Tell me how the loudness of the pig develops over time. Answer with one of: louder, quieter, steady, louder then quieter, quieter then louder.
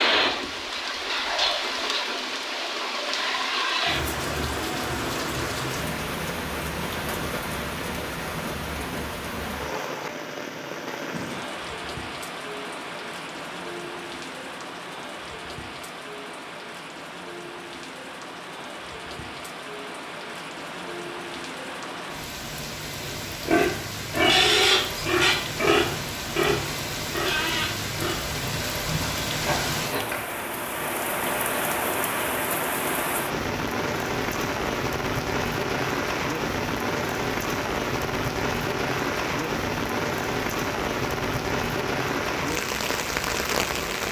quieter.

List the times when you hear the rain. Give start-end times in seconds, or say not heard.
0.0-44.0.